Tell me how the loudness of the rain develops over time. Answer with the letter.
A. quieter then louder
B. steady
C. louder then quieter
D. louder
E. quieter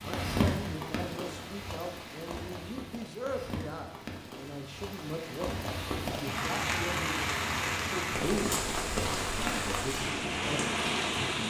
A.